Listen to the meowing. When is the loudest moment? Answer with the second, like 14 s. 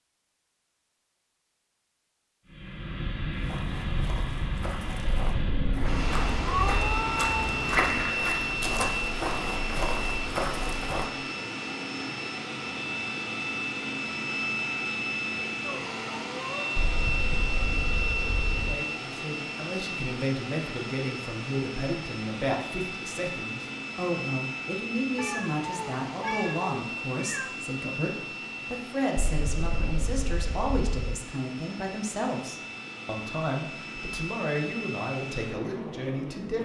7 s.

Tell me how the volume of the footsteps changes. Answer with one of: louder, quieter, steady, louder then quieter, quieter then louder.
louder.